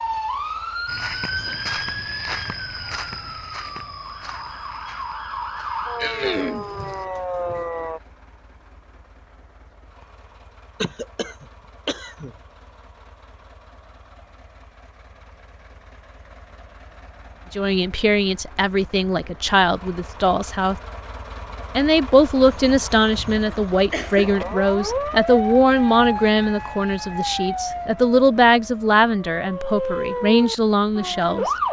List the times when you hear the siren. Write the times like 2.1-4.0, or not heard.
0.0-8.0, 24.2-31.6.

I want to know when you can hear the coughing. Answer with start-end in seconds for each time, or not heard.
6.0-6.7, 10.8-12.3, 22.4-24.4.